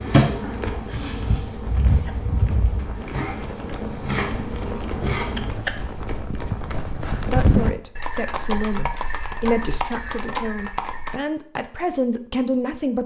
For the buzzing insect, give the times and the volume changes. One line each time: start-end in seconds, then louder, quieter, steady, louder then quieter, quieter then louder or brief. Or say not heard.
0.0-5.5 steady.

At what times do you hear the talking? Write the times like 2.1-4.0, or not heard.
7.3-13.0.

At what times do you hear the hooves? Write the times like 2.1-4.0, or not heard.
0.4-11.2.